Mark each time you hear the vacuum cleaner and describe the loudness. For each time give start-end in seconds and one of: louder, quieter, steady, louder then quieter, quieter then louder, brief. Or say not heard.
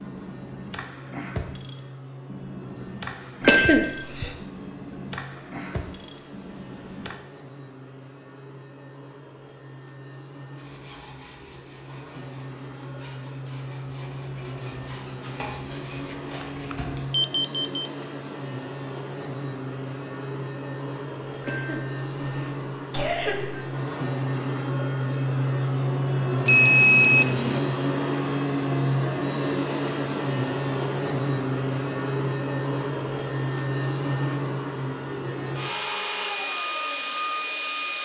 0.0-38.0 louder.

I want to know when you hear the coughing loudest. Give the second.
4 s.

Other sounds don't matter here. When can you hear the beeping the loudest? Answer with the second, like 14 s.
27 s.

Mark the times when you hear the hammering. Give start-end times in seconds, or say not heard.
not heard.